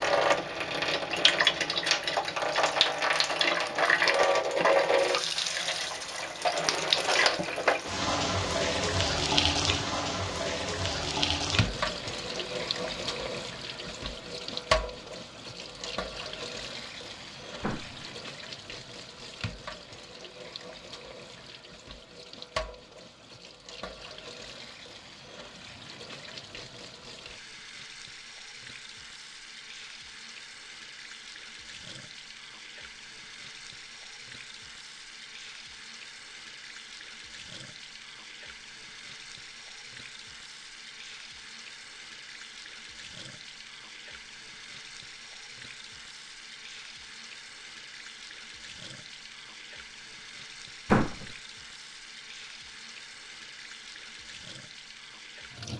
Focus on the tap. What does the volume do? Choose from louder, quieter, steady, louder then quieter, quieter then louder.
quieter.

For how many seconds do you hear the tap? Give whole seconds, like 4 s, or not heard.
56 s.